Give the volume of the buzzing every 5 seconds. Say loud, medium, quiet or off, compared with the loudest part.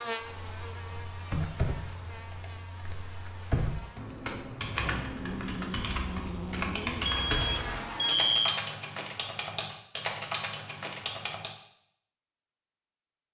medium, loud, off.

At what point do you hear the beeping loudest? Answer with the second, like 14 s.
8 s.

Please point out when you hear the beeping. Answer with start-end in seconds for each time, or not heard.
7.0-8.6.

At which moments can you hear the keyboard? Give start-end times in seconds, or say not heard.
0.2-11.6.